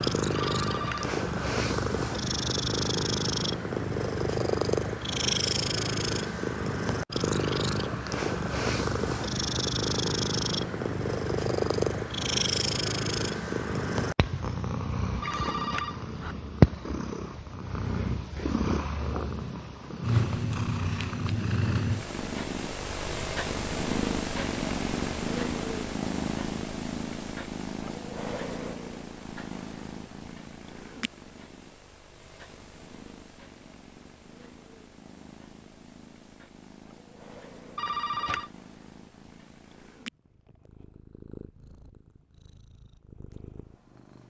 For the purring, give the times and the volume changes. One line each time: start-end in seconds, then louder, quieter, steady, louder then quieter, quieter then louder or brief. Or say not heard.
0.0-44.2 quieter.